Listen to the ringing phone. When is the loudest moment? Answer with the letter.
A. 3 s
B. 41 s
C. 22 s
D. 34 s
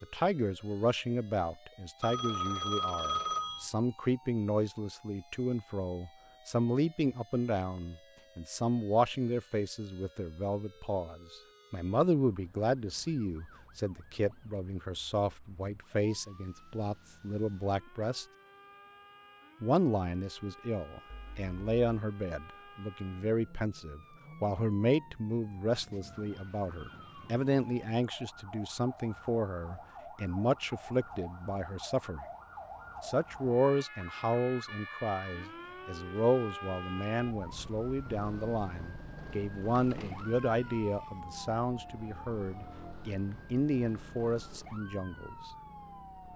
A.